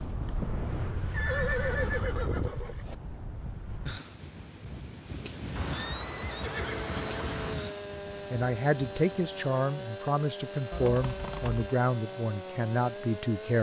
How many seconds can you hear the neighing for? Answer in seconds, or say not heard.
5 s.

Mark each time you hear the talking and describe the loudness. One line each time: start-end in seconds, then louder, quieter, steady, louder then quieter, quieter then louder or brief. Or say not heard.
8.3-13.5 steady.